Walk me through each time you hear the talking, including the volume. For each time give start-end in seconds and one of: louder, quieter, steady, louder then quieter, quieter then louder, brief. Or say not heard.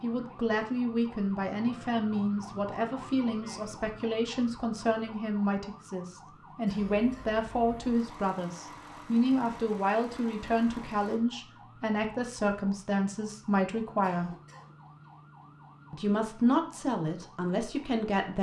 0.0-14.3 steady
15.9-18.3 brief.